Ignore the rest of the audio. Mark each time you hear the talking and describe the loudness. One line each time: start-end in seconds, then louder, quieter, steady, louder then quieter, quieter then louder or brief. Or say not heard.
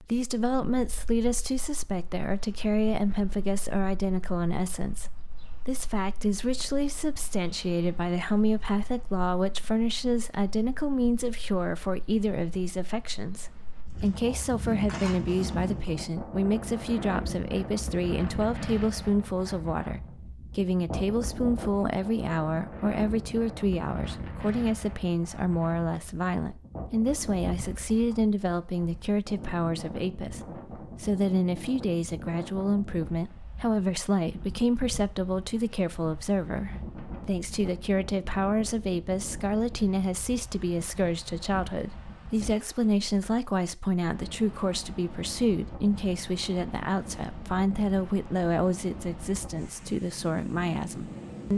0.0-51.5 steady.